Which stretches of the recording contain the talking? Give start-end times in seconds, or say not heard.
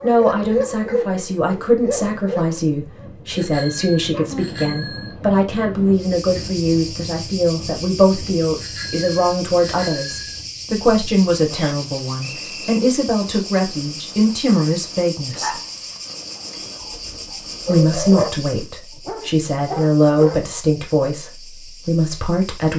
0.0-15.6, 17.6-22.7.